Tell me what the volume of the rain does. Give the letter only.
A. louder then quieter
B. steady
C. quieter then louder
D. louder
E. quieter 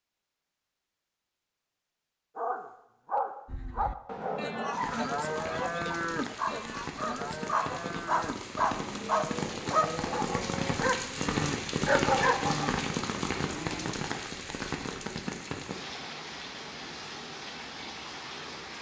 A.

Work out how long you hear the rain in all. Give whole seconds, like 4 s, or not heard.
14 s.